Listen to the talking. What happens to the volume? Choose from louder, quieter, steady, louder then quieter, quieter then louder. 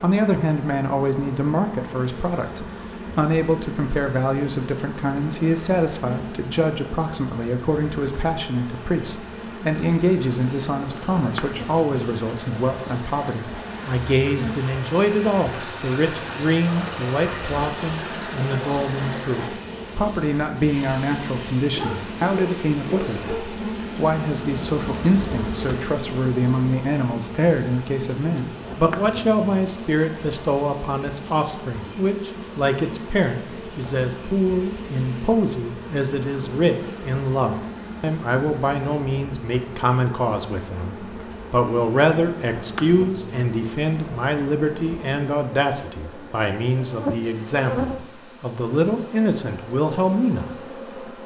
steady.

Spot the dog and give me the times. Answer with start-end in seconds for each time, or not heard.
21.7-23.4.